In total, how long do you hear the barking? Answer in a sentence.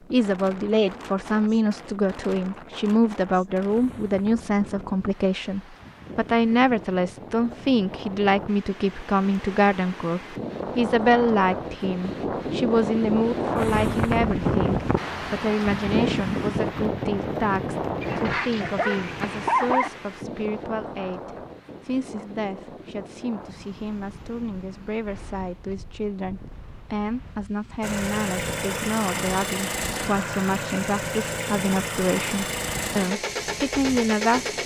The barking can be heard for 2 seconds in total.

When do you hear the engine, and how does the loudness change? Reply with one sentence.
The engine can be heard from 27.8 to 34.6 s, at a steady volume.